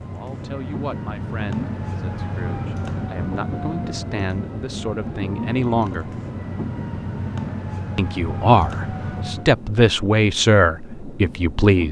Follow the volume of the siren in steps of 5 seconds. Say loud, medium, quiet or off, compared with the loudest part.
loud, loud, off.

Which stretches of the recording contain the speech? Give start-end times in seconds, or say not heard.
0.0-6.1, 8.0-11.8.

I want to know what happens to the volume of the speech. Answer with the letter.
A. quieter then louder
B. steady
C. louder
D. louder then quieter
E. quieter
C.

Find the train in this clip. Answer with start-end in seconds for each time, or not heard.
0.0-11.8.